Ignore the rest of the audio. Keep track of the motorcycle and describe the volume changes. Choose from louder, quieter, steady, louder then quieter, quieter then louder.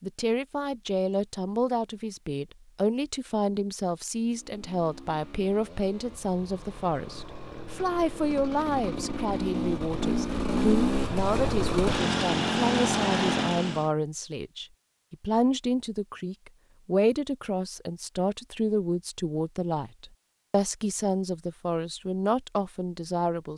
louder.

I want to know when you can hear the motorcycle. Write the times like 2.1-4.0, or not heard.
4.2-13.9.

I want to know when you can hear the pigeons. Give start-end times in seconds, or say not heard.
not heard.